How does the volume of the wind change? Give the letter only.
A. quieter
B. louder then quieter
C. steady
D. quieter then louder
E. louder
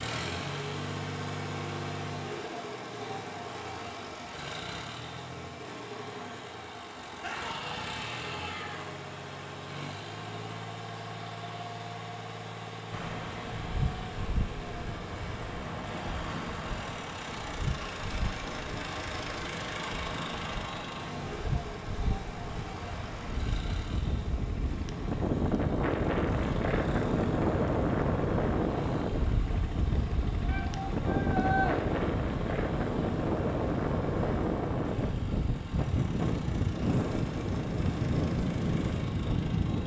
E.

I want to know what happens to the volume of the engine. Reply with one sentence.
The volume of the engine goes down.